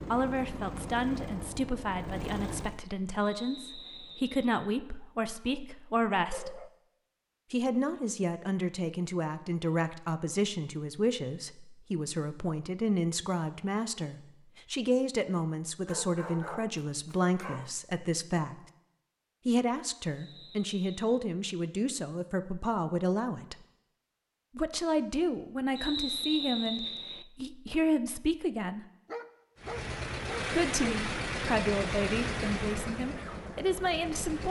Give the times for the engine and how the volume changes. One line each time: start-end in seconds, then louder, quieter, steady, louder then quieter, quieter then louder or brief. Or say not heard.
0.0-2.8 brief
29.6-34.4 quieter.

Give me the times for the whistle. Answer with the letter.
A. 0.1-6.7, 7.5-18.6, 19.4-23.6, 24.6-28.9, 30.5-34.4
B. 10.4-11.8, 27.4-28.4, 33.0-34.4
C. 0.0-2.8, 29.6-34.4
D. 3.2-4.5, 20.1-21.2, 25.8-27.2
D.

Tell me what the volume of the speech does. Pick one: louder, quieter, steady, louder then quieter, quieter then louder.
steady.